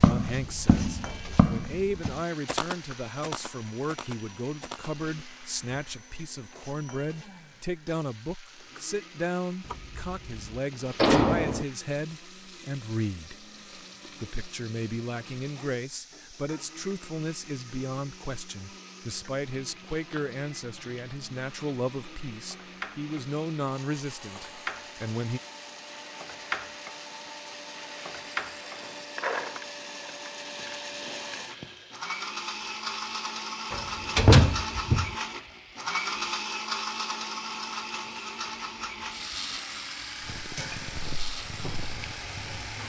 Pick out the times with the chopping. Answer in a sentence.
You can't hear the chopping here.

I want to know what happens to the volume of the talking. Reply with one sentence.
The volume of the talking stays about the same.